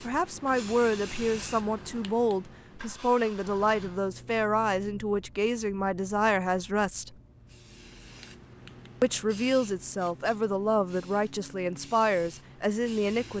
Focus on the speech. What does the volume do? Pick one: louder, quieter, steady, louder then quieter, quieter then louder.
steady.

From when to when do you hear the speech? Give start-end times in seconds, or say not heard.
0.0-7.1, 9.0-13.3.